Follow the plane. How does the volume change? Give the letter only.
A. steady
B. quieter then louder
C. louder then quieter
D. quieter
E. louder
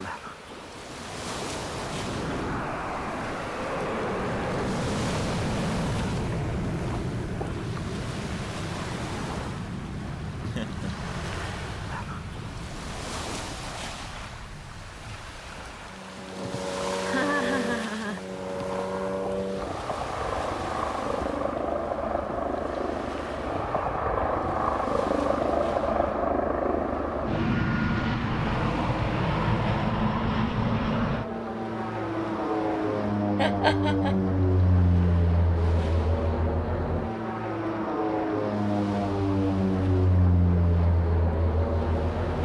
B.